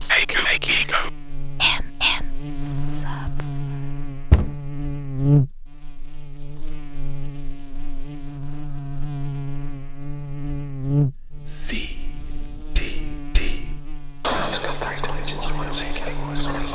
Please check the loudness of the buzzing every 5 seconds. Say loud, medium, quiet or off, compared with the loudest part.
medium, loud, loud, medium.